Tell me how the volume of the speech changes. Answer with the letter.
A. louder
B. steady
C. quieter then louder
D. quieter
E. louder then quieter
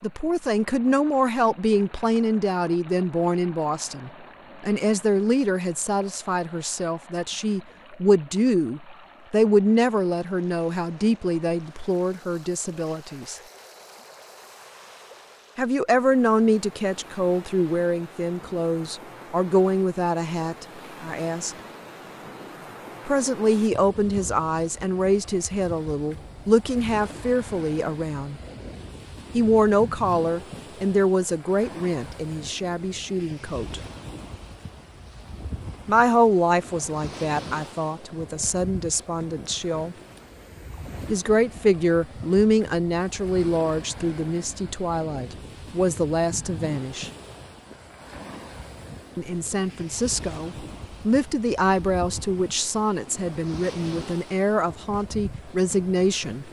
B.